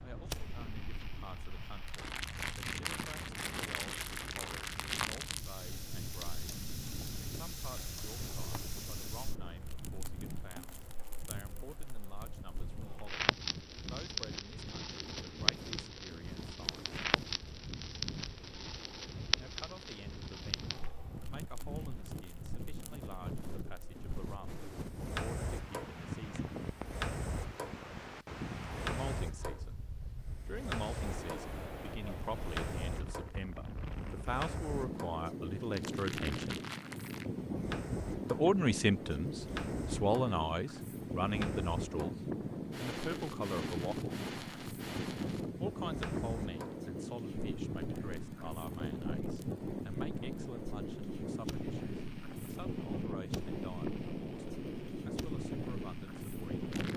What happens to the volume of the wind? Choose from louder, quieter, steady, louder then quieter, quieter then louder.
louder.